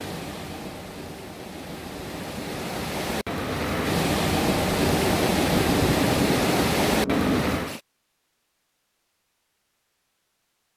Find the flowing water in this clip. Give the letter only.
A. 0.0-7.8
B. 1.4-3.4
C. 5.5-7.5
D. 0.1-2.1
A.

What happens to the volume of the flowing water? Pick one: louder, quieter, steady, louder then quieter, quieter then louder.
louder.